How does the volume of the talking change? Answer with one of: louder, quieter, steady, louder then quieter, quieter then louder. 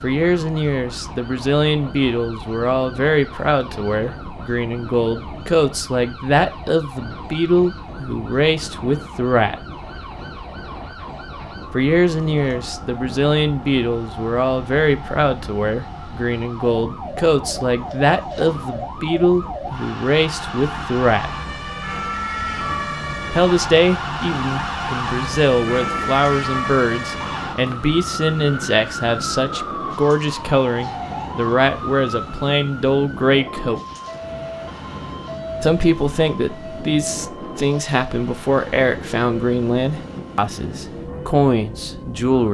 steady.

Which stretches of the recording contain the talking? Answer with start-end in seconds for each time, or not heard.
0.0-9.6, 11.7-21.3, 23.3-33.8, 35.6-42.4.